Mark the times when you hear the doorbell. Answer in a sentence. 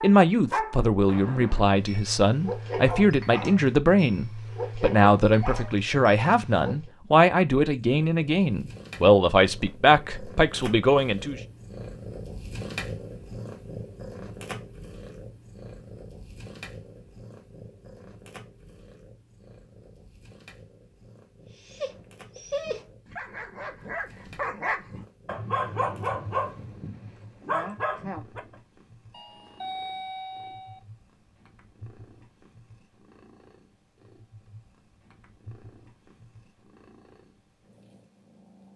The doorbell can be heard from 29.1 to 30.8 s.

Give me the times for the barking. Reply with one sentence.
You can hear the barking from 0.0 to 6.9 s and from 21.5 to 28.6 s.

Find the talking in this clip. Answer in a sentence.
You can hear the talking from 0.0 to 11.4 s.